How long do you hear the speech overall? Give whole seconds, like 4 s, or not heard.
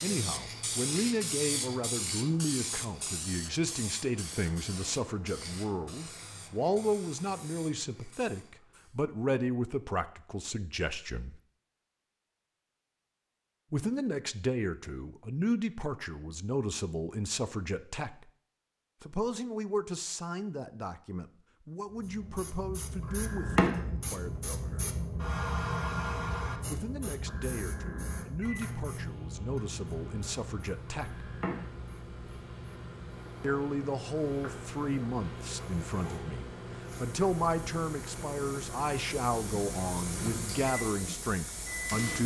35 s.